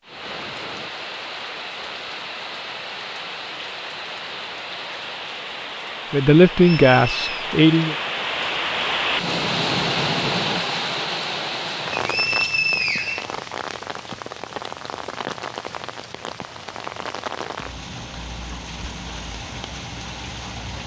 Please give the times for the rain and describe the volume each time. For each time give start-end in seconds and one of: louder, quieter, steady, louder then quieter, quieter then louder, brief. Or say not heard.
0.0-20.8 louder then quieter.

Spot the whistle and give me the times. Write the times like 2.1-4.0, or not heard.
6.6-7.5, 11.9-13.3.